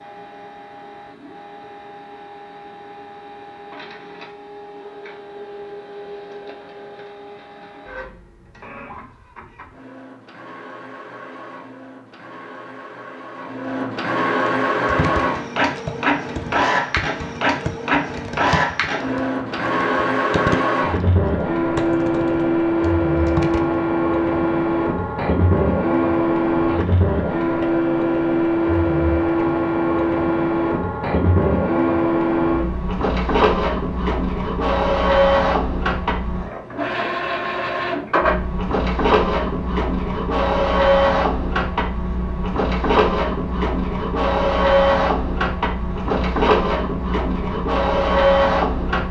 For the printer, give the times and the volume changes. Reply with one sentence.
You can hear the printer from 0.0 to 49.0 s, getting louder.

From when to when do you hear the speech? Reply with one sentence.
The speech can't be heard in this clip.